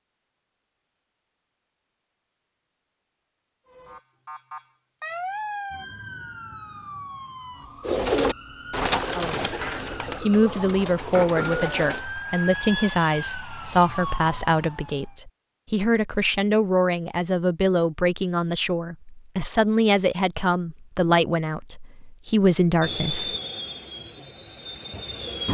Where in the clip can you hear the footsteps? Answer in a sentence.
You can't hear the footsteps here.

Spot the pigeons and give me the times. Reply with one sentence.
You can hear the pigeons from 7.8 to 12.1 s.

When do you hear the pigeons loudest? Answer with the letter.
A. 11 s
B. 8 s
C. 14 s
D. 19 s
B.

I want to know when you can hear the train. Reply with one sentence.
The train can be heard from 22.8 to 25.4 s.